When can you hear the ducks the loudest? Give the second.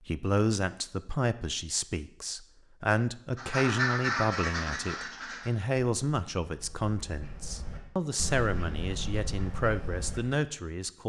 4 s.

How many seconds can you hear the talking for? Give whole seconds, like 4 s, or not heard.
11 s.